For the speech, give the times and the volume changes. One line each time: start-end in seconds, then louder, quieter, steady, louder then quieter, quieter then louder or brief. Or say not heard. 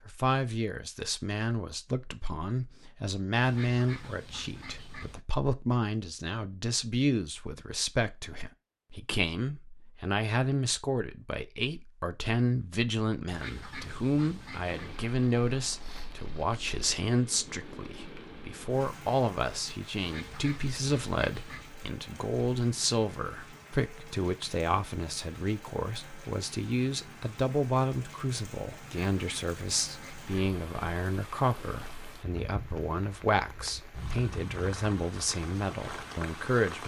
0.1-36.8 steady.